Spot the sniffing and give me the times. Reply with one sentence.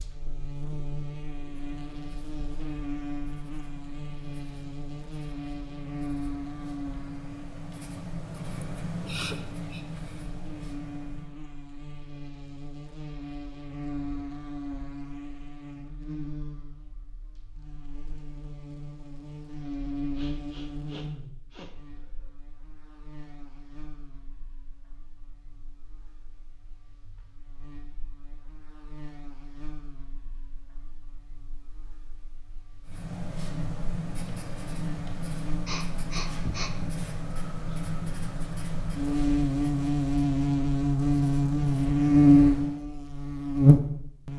You can hear the sniffing from 8.6 to 9.8 s, from 20.1 to 22.3 s and from 35.6 to 37.0 s.